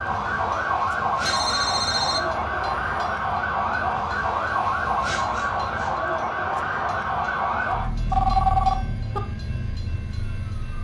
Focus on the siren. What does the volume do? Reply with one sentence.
The volume of the siren goes down.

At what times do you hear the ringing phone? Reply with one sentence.
The ringing phone can be heard from 1.2 to 2.2 s and from 8.1 to 9.2 s.